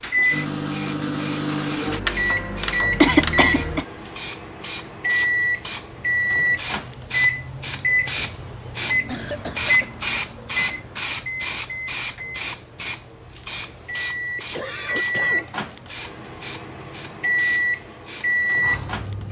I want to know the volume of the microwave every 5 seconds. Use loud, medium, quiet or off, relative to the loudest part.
loud, loud, medium, loud.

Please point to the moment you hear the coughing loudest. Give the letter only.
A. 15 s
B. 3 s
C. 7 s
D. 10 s
B.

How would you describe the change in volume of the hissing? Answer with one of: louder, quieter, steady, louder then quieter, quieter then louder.
louder then quieter.